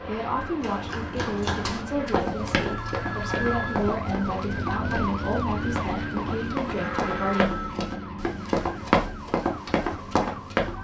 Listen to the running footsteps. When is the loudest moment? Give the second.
9 s.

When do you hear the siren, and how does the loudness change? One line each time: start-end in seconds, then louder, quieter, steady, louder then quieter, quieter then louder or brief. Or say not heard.
0.0-10.7 louder then quieter.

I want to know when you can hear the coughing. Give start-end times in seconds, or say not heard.
not heard.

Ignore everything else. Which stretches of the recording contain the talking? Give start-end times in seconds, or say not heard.
0.0-7.5.